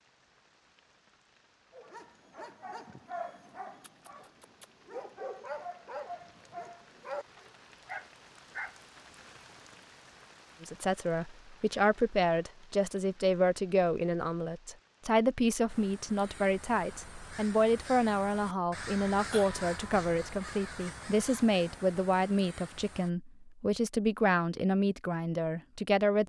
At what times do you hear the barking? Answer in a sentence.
The barking can be heard from 1.7 to 8.8 s.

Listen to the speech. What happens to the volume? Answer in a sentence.
The loudness of the speech stays about the same.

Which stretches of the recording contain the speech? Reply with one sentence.
You can hear the speech from 10.6 to 26.2 s.